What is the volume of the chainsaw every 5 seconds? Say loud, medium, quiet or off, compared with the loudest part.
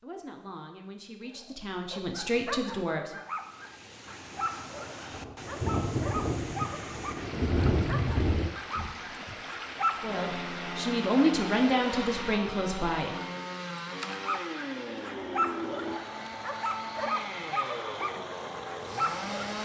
off, off, loud, loud.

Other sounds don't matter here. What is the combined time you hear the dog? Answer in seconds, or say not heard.
14 s.